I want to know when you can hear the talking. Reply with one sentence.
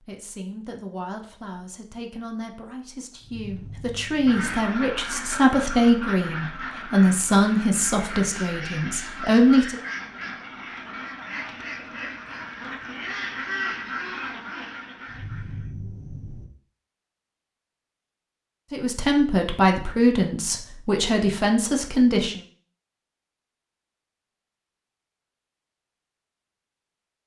You can hear the talking from 0.0 to 9.8 s and from 18.7 to 22.4 s.